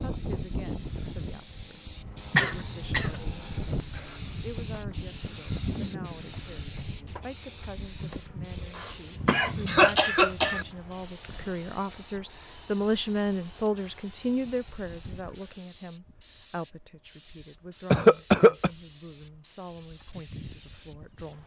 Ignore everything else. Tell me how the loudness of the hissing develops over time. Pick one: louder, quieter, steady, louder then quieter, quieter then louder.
quieter.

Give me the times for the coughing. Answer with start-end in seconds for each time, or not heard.
2.3-3.2, 8.8-10.7, 17.9-18.7.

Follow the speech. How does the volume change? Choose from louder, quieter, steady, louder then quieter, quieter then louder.
louder then quieter.